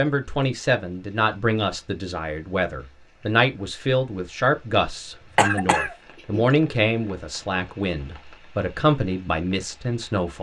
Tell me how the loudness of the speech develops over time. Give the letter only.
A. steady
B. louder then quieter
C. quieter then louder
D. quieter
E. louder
A.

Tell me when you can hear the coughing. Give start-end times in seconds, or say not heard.
5.3-6.5.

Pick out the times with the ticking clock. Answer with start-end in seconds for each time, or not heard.
not heard.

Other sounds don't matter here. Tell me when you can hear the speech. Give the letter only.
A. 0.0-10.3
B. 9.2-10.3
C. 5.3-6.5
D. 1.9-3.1
A.